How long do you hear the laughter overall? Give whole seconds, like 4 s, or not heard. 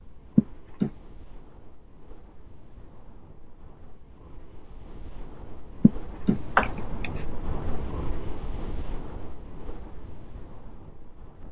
2 s.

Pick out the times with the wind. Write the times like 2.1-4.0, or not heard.
0.0-11.4.